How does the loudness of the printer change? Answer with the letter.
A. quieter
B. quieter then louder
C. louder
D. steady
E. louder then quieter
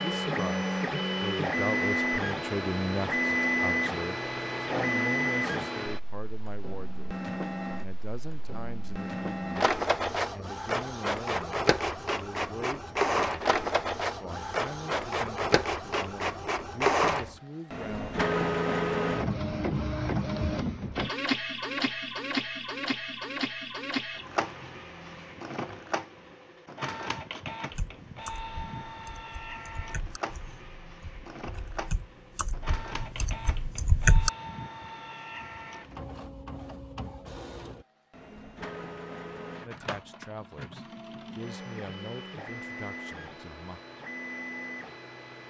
A.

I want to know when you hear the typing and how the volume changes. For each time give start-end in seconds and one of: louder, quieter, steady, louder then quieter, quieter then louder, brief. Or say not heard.
27.7-34.3 quieter then louder.